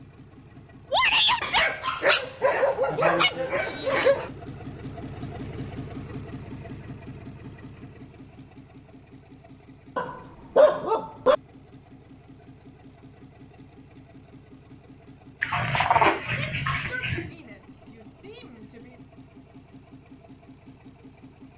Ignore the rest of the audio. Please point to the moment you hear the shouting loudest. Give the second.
1 s.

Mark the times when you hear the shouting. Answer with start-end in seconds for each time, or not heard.
0.9-1.7, 16.3-18.9.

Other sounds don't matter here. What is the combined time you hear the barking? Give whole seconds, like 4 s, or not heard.
6 s.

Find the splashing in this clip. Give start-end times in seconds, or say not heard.
not heard.